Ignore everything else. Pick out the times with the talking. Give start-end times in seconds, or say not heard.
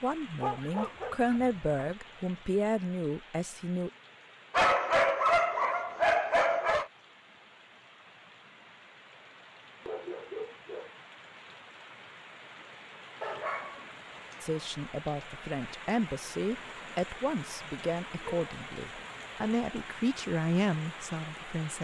0.0-3.9, 14.4-21.7.